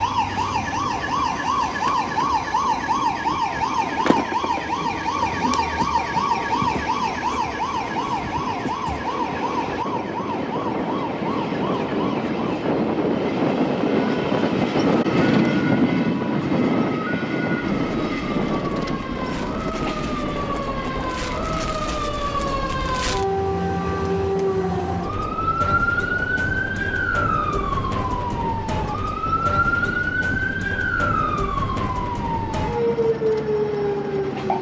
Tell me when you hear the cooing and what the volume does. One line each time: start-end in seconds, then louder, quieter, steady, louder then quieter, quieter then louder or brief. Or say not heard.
not heard.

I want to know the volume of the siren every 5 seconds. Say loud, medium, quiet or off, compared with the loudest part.
loud, loud, medium, medium, loud, loud, loud.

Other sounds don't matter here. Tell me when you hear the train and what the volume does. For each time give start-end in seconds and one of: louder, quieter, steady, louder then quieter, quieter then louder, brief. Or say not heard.
0.0-34.5 louder then quieter.